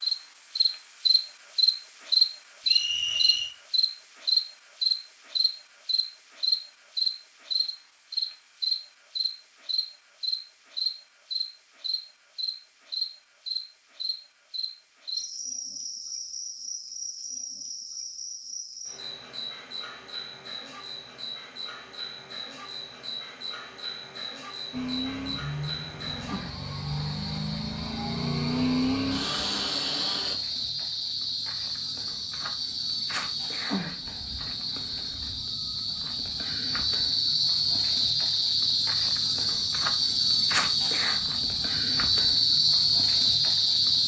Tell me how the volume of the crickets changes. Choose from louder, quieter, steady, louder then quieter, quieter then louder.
quieter then louder.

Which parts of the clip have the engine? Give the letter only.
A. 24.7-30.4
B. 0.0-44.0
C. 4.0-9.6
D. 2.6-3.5
A.